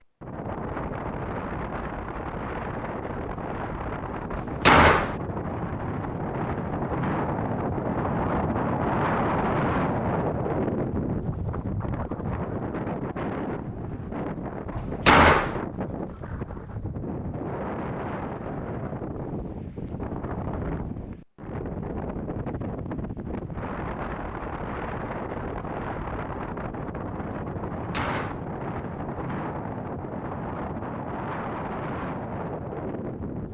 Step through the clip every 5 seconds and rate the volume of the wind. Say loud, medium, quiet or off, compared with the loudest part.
medium, loud, loud, medium, medium, medium, medium.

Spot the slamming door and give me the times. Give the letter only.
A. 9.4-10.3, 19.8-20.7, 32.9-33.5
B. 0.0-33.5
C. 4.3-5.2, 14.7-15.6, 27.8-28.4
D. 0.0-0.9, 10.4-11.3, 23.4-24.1
C.